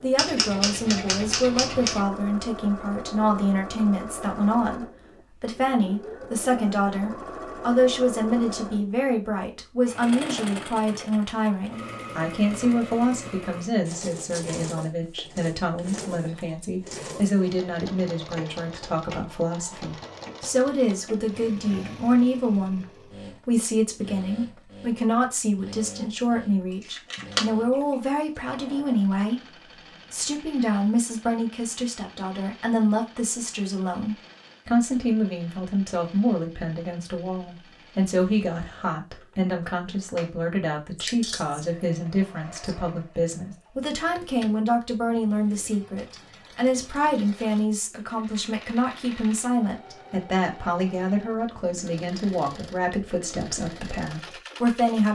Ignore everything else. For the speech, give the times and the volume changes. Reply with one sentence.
The speech can be heard from 0.0 to 55.1 s, at a steady volume.